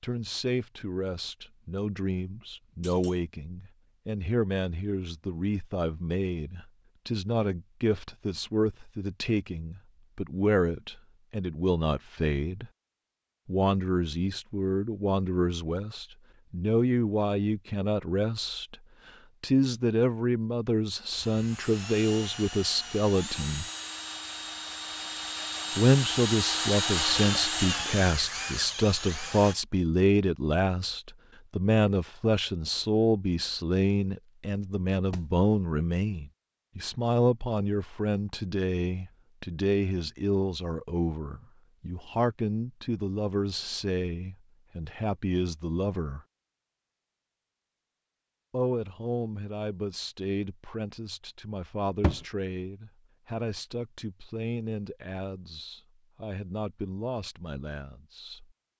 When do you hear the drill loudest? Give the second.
27 s.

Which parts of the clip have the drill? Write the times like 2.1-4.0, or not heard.
21.1-29.6.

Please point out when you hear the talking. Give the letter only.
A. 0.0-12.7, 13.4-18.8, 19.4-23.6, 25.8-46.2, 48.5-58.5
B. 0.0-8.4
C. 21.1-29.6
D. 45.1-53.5
A.